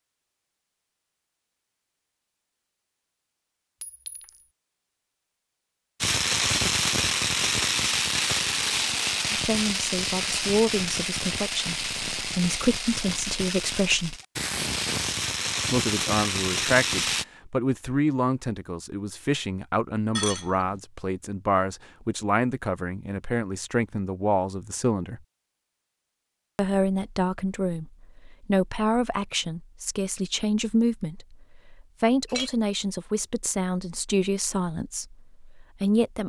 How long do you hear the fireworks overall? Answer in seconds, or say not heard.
11 s.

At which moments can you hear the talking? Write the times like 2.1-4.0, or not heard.
9.3-14.2, 15.7-25.2, 26.6-36.2.